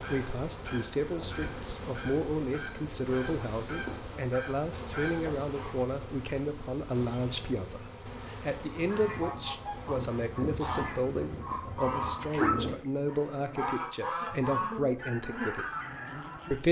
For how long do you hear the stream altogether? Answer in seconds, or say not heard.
not heard.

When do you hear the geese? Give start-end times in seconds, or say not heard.
0.0-5.8, 8.5-16.6.